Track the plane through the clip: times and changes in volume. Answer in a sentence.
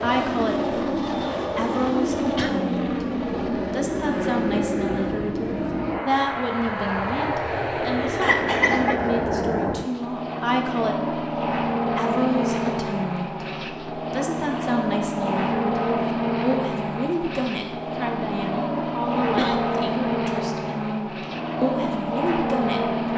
You can hear the plane from 0.0 to 23.1 s, at a steady volume.